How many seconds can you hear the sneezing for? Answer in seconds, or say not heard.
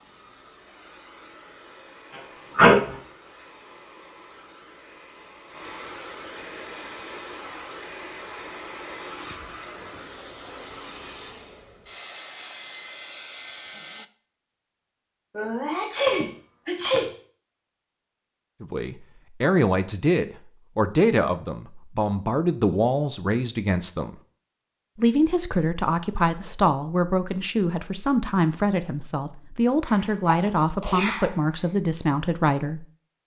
4 s.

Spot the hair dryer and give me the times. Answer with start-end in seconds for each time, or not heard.
0.0-14.1.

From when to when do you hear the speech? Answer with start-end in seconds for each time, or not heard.
18.6-24.1, 24.9-33.2.